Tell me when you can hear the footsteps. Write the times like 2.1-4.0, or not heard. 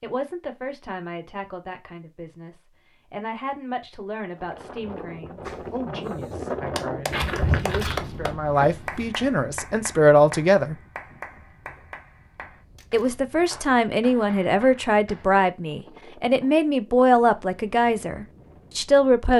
7.0-9.0.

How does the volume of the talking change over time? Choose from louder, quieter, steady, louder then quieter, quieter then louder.
louder.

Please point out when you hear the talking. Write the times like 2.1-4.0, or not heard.
0.0-10.8, 12.9-19.3.